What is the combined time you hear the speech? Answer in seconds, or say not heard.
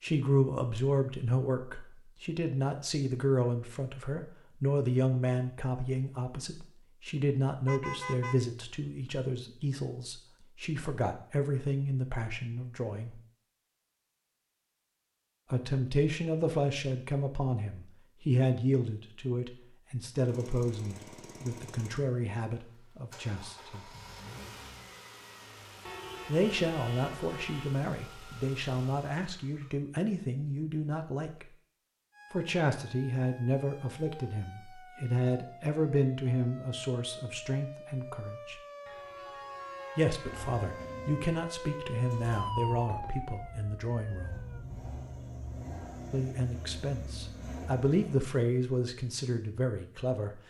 42 s.